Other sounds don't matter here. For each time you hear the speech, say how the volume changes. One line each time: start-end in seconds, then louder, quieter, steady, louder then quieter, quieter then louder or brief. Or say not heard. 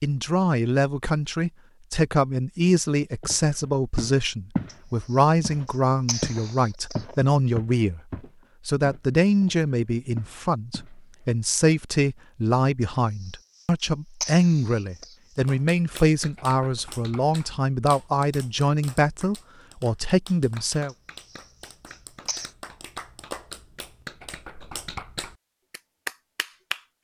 0.0-8.0 steady
8.7-20.9 steady.